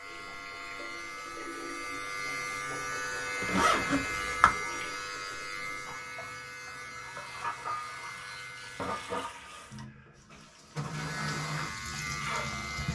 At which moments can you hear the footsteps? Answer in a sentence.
The footsteps can't be heard in this clip.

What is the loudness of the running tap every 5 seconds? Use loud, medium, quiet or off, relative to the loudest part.
medium, loud, loud.